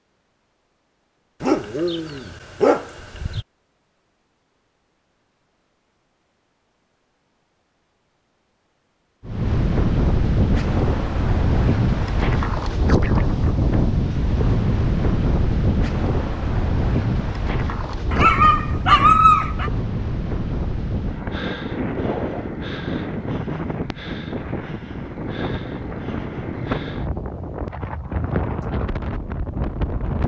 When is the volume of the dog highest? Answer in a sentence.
The loudest moment of the dog is at 19 seconds.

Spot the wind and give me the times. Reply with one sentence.
You can hear the wind from 9.2 to 30.2 s.